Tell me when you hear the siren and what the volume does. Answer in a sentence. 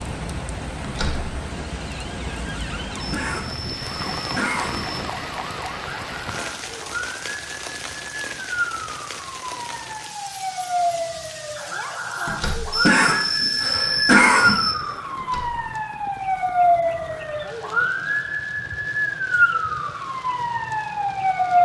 You can hear the siren from 0.0 to 21.6 s, getting louder.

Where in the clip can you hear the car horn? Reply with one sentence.
You can't hear the car horn here.